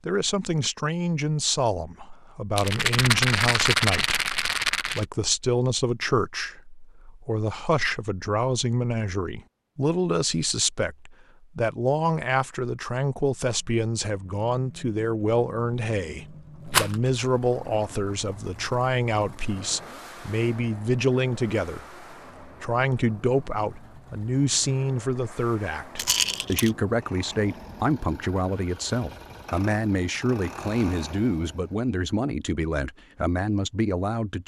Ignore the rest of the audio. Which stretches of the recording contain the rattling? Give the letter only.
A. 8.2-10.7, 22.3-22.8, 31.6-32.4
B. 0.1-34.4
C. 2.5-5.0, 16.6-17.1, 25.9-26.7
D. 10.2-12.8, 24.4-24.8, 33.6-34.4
C.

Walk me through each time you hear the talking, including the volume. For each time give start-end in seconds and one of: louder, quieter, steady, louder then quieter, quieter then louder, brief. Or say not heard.
0.1-34.4 steady.